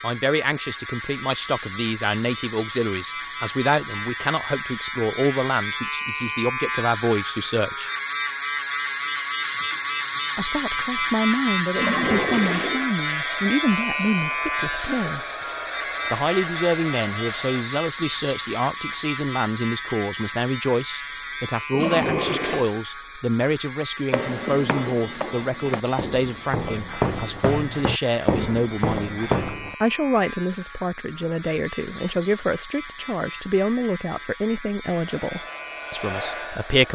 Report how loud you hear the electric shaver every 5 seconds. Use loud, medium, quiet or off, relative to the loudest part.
medium, loud, loud, medium, medium, quiet, quiet, quiet.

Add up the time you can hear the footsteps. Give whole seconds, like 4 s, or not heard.
6 s.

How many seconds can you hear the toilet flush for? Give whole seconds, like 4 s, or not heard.
2 s.